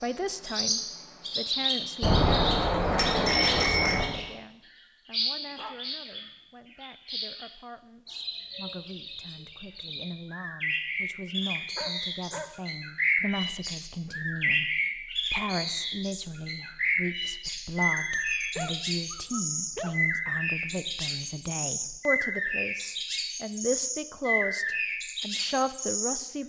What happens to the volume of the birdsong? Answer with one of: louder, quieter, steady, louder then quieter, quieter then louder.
quieter then louder.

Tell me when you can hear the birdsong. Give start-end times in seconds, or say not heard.
0.0-26.2.